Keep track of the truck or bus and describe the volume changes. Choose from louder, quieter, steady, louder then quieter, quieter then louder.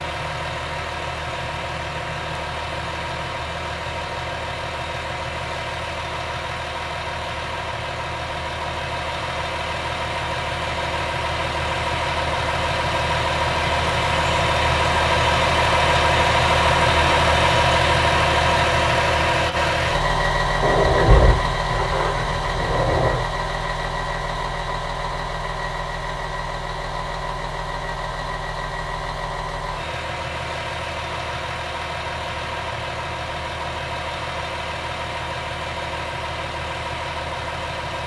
louder then quieter.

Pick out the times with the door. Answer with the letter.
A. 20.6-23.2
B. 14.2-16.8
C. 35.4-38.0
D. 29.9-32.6
A.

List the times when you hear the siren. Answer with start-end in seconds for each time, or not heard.
not heard.